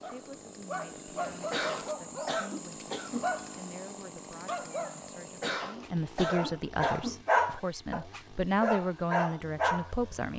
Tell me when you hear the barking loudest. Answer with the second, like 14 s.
7 s.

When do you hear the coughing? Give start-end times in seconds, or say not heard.
1.5-3.3, 5.4-7.2.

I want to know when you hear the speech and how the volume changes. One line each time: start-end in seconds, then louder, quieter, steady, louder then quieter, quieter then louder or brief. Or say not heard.
0.0-10.3 louder.